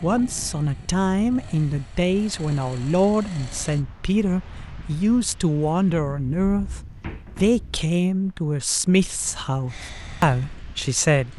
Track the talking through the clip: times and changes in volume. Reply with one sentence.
You can hear the talking from 0.0 to 11.3 s, at a steady volume.